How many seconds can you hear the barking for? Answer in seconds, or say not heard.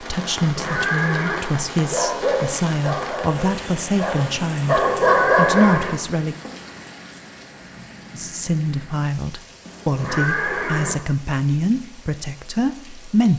4 s.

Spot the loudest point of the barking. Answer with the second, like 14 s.
5 s.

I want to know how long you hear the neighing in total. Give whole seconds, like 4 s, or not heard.
4 s.